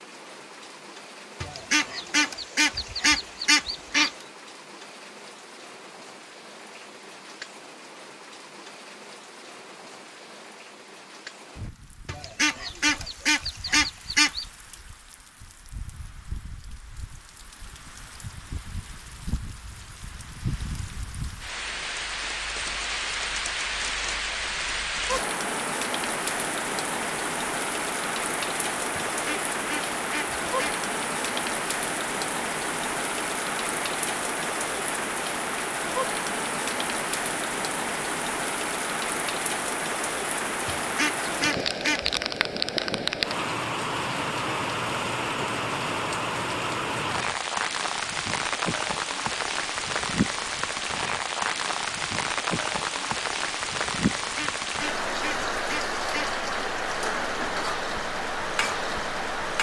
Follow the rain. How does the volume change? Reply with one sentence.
The loudness of the rain goes up.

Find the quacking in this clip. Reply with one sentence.
The quacking can be heard from 1.4 to 4.1 s, from 12.1 to 14.4 s, from 29.1 to 30.8 s, from 40.8 to 42.1 s and from 54.1 to 56.4 s.